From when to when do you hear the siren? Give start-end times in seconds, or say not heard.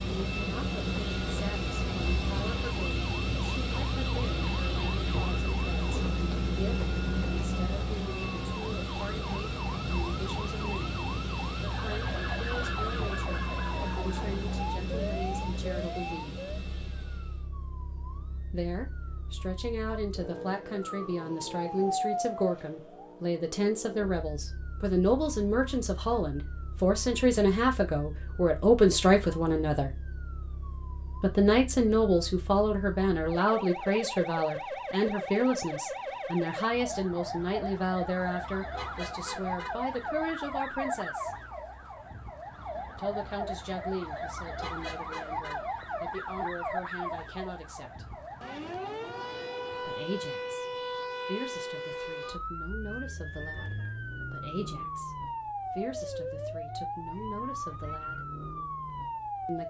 0.0-59.6.